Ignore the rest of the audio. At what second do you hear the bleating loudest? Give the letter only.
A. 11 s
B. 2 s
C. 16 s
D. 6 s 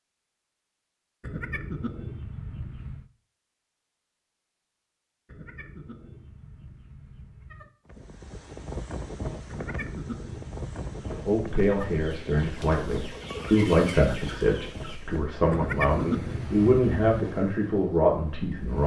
C.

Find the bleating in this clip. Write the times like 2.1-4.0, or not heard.
1.2-3.1, 5.2-7.7, 9.4-12.1, 15.5-17.2.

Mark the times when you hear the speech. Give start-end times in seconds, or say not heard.
11.1-18.8.